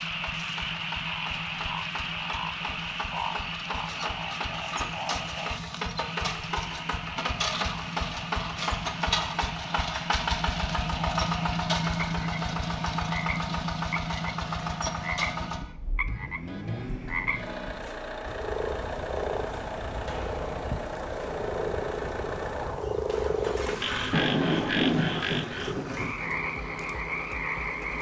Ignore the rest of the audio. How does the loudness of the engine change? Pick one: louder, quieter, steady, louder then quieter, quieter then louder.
louder then quieter.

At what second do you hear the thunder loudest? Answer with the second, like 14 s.
25 s.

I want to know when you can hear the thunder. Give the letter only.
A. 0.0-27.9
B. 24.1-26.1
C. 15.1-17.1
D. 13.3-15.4
B.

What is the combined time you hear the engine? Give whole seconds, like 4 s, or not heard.
28 s.